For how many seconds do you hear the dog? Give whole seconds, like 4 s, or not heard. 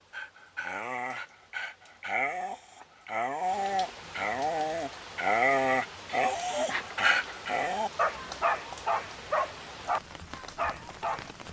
11 s.